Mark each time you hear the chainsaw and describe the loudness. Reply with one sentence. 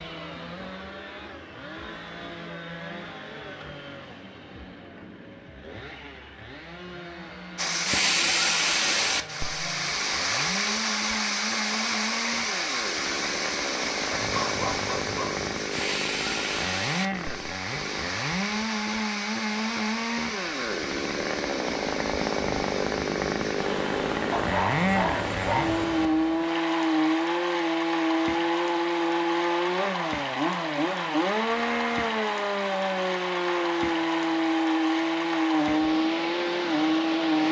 The chainsaw can be heard from 0.0 to 37.4 s, getting louder.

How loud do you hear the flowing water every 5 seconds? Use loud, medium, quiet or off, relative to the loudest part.
off, loud, loud, medium, medium, medium, medium, medium.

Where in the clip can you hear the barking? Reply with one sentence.
The barking can be heard from 14.1 to 15.5 s and from 24.3 to 25.9 s.